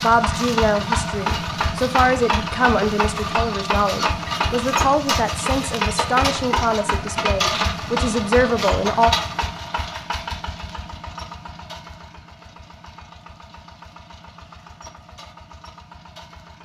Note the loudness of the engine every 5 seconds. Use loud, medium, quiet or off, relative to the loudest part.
loud, loud, quiet, quiet.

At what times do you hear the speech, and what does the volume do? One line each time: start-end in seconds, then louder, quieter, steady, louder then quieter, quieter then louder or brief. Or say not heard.
0.0-9.1 steady.